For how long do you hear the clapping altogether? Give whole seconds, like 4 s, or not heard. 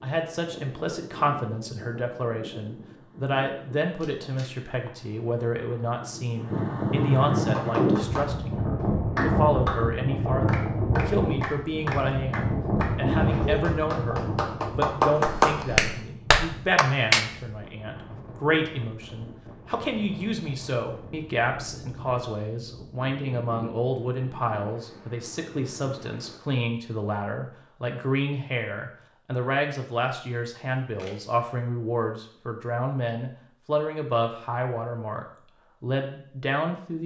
10 s.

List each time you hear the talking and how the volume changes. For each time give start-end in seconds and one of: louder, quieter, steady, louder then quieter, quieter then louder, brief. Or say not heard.
0.0-37.0 steady.